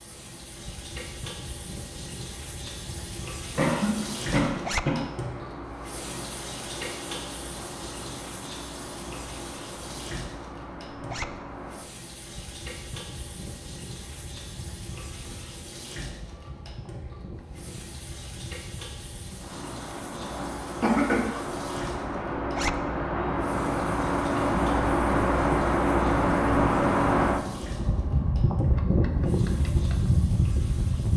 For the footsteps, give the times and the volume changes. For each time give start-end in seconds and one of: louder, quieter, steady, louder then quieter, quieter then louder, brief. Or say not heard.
not heard.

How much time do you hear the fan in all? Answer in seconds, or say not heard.
31 s.